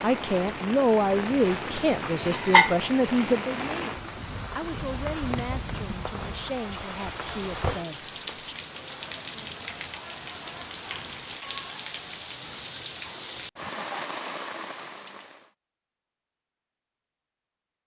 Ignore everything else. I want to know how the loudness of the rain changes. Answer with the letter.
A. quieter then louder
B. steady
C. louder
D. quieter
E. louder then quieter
B.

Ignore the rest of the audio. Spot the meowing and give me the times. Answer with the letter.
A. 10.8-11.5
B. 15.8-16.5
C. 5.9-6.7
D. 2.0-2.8
D.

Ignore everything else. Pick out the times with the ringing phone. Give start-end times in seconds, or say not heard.
not heard.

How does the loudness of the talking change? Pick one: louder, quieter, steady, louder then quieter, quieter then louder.
quieter.